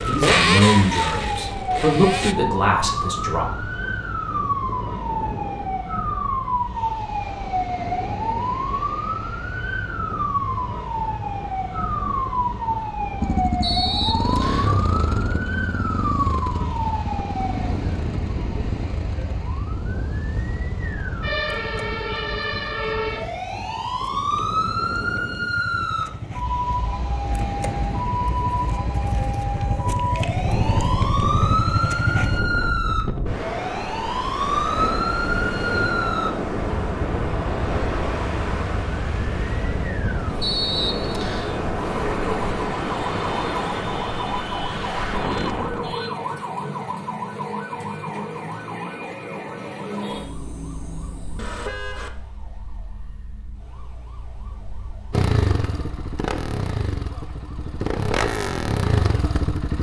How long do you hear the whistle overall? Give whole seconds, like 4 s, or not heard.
2 s.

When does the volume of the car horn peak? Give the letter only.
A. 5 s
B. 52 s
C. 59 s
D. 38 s
B.